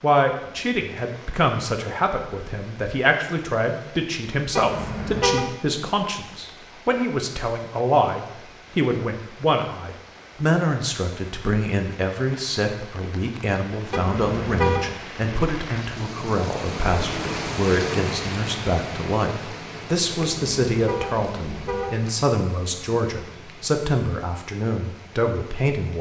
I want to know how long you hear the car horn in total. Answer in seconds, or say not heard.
4 s.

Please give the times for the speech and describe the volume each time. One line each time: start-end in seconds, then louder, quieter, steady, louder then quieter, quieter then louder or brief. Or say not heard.
0.0-25.9 steady.